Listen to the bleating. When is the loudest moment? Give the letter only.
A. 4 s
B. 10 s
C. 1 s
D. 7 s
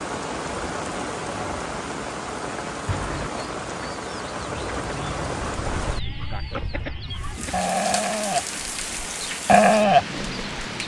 B.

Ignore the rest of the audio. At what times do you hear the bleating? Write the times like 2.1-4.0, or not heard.
5.5-10.8.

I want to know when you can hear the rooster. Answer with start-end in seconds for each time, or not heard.
2.9-7.7.